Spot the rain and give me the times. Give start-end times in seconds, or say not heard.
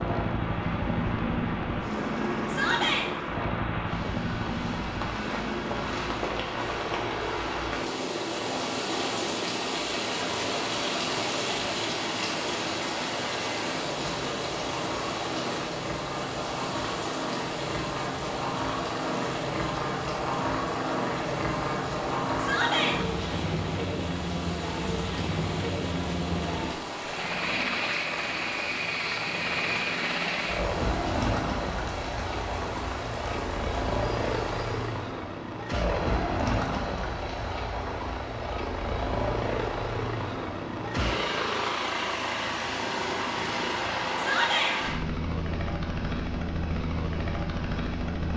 0.0-35.0.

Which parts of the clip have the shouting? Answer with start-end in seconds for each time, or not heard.
2.5-3.0, 22.4-22.9, 44.1-44.8.